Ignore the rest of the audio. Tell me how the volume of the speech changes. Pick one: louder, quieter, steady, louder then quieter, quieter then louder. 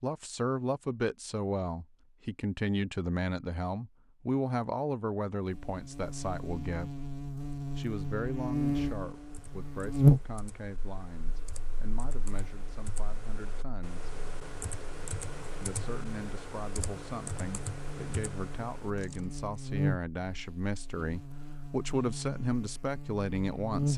quieter then louder.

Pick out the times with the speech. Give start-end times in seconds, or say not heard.
0.0-7.0, 7.8-14.2, 15.6-23.9.